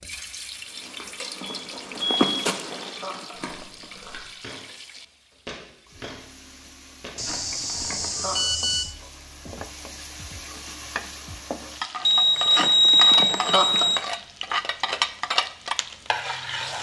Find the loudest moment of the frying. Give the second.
15 s.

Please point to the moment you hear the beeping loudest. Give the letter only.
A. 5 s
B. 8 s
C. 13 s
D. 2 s
C.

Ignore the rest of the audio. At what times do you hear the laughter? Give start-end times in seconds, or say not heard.
1.9-3.9, 7.2-8.4, 12.4-13.9.